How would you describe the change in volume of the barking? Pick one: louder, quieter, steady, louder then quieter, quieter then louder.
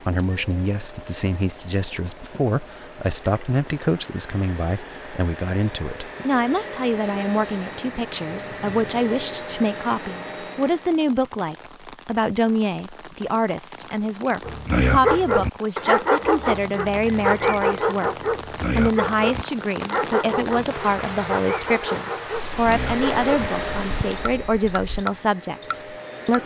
quieter.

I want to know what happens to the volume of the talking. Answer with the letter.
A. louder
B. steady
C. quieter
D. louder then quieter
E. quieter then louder
B.